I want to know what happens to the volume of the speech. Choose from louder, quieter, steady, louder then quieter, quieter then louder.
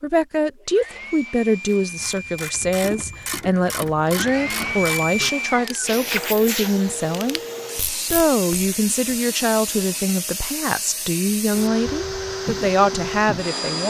steady.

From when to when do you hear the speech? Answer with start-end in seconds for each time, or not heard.
0.0-13.8.